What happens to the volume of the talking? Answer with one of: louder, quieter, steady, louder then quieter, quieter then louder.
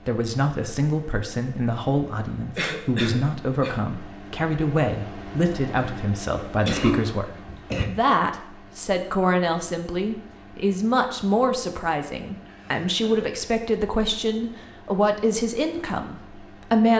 steady.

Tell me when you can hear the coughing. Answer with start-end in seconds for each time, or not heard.
2.5-3.8, 6.5-7.8, 12.3-13.3.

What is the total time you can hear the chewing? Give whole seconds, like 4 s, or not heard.
not heard.